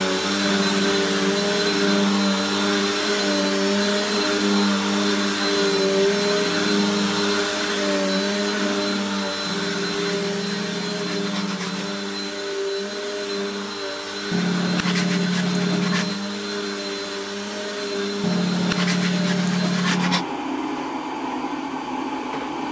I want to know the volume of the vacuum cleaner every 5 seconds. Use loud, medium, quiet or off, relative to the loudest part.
loud, loud, medium, medium, medium.